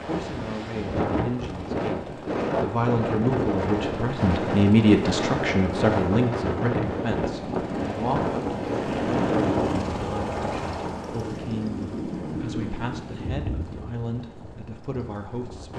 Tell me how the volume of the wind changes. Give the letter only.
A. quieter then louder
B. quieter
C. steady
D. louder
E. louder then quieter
C.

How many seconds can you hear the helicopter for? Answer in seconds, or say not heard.
16 s.